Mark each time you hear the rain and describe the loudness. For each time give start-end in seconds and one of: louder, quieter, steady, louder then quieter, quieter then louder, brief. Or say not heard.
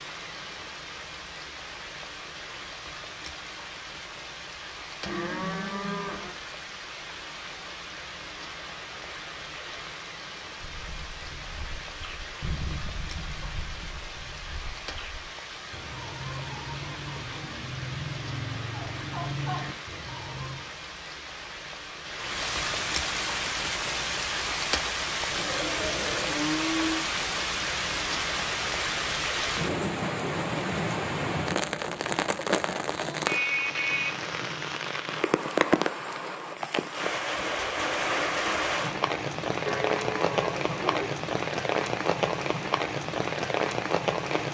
0.0-44.5 louder.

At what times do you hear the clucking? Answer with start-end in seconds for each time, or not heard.
10.6-20.7.